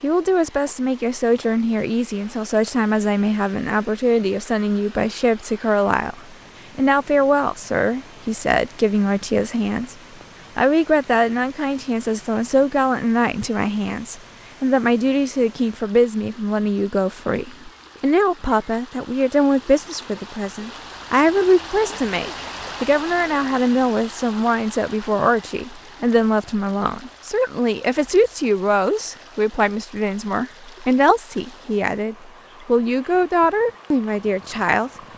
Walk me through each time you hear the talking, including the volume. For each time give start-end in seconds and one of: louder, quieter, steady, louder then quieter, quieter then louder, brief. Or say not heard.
0.0-9.9 steady
10.6-34.9 steady.